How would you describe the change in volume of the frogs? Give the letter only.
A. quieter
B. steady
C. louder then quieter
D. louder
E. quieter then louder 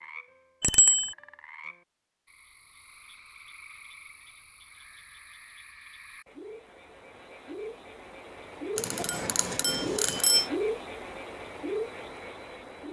D.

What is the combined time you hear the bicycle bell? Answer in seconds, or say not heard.
2 s.